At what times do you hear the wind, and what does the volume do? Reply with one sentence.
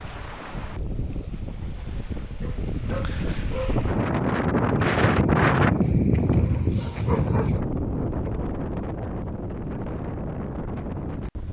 The wind can be heard from 0.0 to 11.4 s, getting louder then quieter.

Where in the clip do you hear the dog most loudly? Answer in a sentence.
The volume of the dog peaks at 7 seconds.